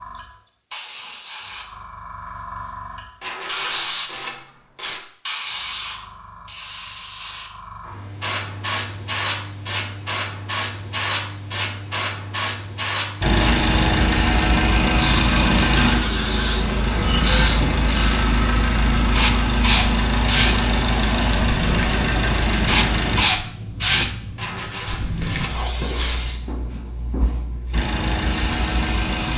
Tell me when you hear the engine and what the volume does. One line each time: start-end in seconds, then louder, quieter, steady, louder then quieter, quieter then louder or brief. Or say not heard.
13.2-23.2 steady
27.7-29.3 brief.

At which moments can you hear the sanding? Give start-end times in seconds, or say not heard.
3.2-5.0, 24.4-26.2.